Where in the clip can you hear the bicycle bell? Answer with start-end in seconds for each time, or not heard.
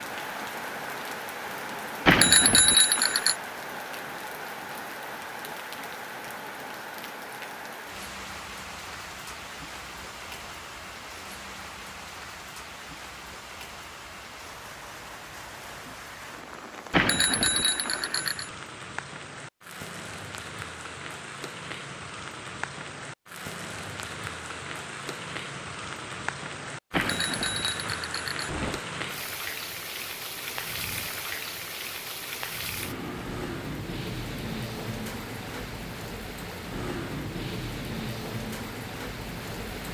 2.0-3.4, 16.9-18.5, 26.9-28.8.